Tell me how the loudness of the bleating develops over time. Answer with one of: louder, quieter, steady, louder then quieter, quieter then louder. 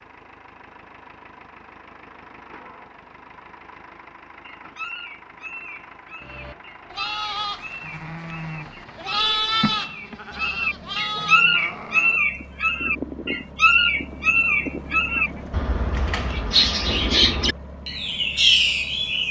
louder then quieter.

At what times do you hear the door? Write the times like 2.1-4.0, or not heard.
15.9-16.5.